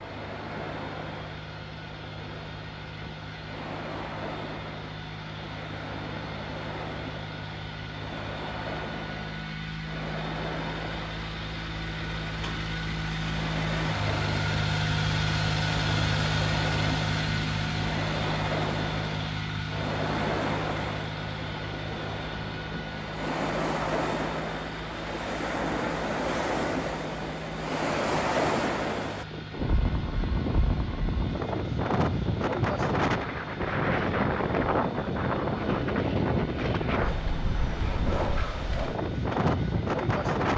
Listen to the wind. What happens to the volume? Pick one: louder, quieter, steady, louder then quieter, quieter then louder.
louder.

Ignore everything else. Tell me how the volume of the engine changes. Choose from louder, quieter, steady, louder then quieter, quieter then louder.
louder then quieter.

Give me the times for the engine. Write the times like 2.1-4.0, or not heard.
0.0-40.4.